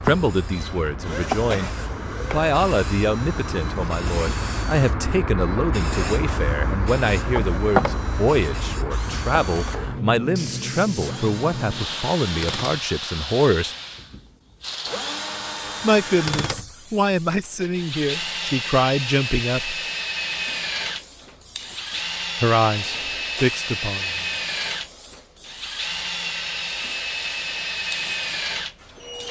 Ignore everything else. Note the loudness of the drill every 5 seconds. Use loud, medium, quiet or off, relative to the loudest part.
medium, quiet, medium, loud, loud, loud.